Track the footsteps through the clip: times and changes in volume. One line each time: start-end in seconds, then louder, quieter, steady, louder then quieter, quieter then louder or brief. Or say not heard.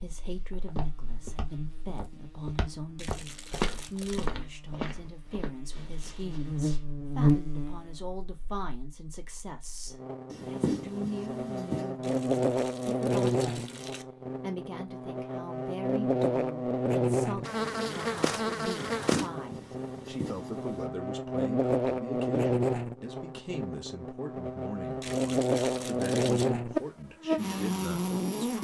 0.0-6.8 louder then quieter.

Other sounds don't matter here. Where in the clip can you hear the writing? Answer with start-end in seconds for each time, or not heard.
10.3-11.9, 18.9-20.9.